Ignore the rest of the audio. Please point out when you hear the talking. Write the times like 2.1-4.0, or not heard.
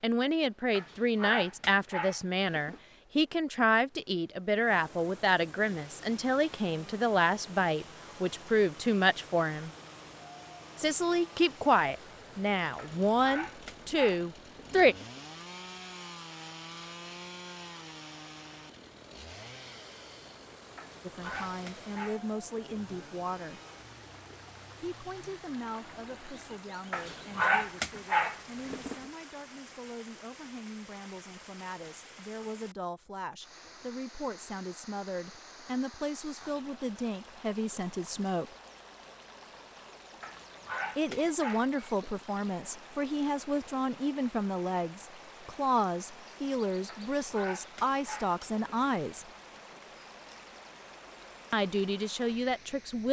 0.0-9.7, 10.8-14.9, 21.1-23.6, 24.8-38.5, 41.0-49.3, 51.5-53.0.